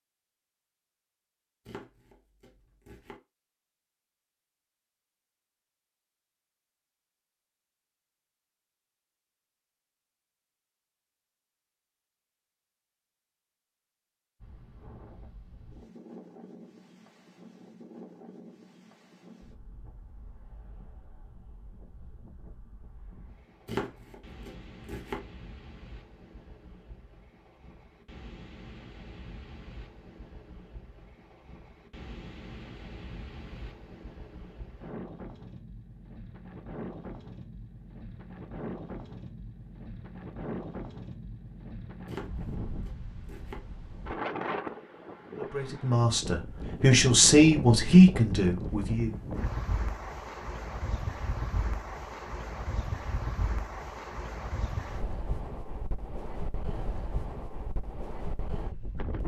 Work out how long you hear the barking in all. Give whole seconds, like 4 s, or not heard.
not heard.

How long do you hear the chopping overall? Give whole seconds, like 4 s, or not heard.
5 s.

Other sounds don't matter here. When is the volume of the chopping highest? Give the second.
24 s.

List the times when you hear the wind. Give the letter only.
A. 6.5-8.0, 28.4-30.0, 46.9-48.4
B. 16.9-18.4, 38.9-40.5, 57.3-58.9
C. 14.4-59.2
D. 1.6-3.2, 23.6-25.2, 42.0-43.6
C.